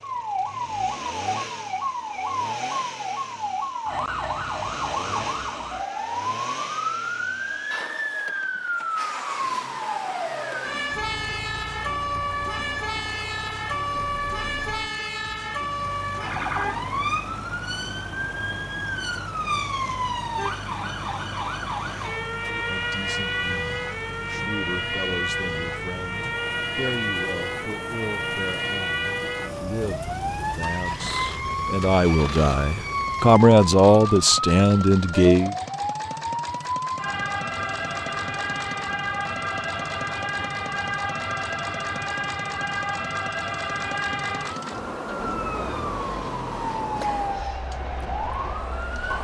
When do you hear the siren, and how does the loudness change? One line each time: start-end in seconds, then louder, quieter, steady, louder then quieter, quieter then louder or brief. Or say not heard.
0.0-49.1 steady.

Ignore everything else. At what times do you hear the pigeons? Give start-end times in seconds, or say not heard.
not heard.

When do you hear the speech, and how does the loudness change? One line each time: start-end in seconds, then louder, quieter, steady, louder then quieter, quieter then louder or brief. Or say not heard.
22.4-35.5 louder.